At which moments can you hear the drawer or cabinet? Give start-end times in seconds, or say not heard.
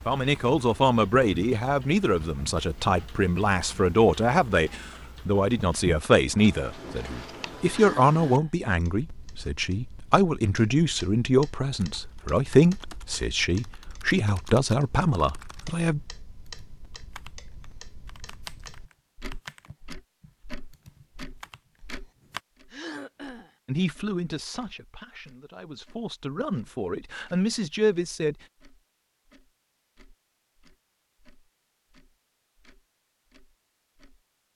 not heard.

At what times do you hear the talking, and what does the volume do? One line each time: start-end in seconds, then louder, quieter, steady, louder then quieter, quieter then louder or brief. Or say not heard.
0.1-16.0 steady
23.6-28.4 quieter then louder.